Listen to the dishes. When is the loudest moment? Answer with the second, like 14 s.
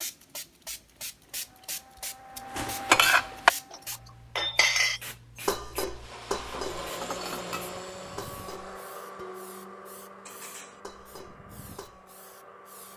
3 s.